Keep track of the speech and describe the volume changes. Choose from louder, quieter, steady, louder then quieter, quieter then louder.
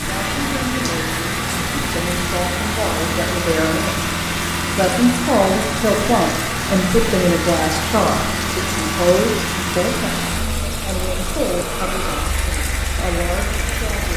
louder then quieter.